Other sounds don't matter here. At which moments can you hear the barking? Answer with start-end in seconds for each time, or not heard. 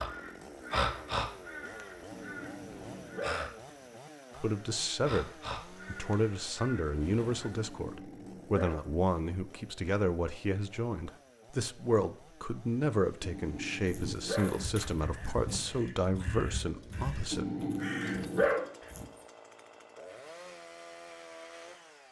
2.1-3.5, 7.5-8.8, 13.2-14.6, 17.3-18.6.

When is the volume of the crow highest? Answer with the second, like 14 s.
1 s.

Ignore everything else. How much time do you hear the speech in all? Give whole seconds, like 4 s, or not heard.
13 s.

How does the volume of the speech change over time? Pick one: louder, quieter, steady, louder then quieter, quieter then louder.
steady.